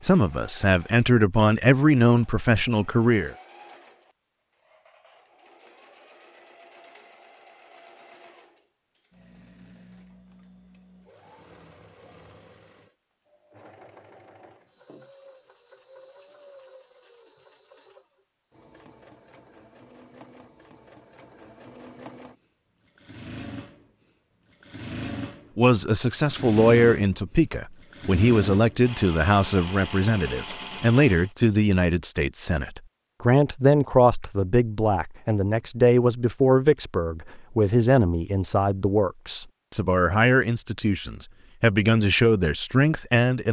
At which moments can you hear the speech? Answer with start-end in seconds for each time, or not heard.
0.0-3.4, 25.6-43.4.